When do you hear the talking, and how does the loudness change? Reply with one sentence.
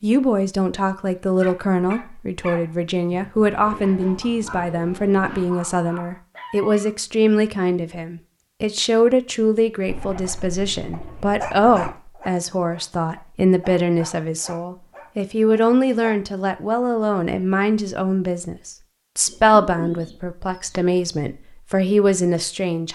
You can hear the talking from 0.0 to 22.9 s, at a steady volume.